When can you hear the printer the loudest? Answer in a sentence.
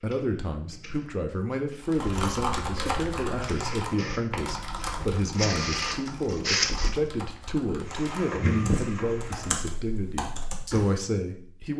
The volume of the printer peaks at 6 seconds.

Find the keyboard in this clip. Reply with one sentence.
The keyboard can be heard from 1.8 to 11.0 s.